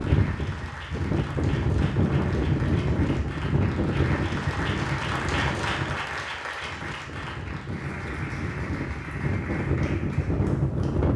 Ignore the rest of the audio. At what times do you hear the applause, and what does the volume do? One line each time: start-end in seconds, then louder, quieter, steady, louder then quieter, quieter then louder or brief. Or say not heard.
0.0-11.1 louder then quieter.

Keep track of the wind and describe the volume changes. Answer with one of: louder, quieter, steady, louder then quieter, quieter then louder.
quieter then louder.